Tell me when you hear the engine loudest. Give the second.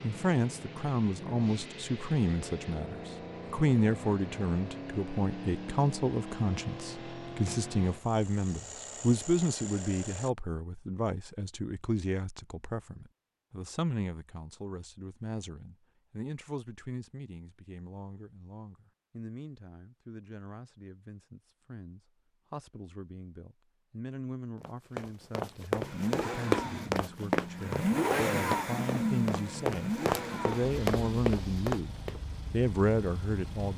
28 s.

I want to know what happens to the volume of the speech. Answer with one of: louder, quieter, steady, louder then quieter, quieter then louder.
quieter then louder.